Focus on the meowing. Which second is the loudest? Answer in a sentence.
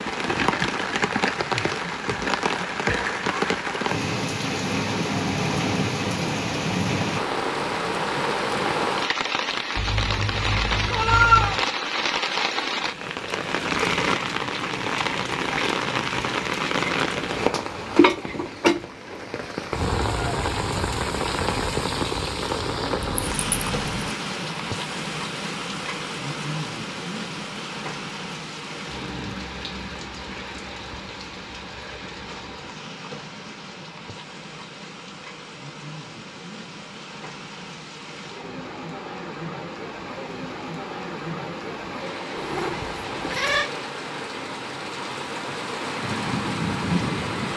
The loudest moment of the meowing is at 11 seconds.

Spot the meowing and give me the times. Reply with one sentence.
The meowing can be heard from 9.8 to 11.6 s, from 23.0 to 24.1 s and from 42.4 to 43.7 s.